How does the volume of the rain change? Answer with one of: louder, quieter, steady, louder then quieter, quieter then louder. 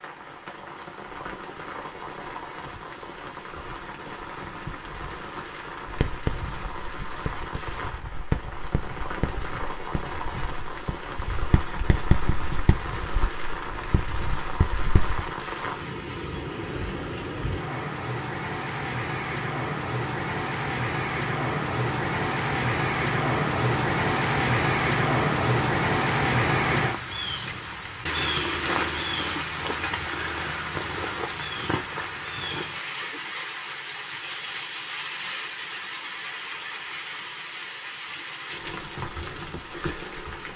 louder then quieter.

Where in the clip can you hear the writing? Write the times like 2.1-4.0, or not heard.
5.8-15.2.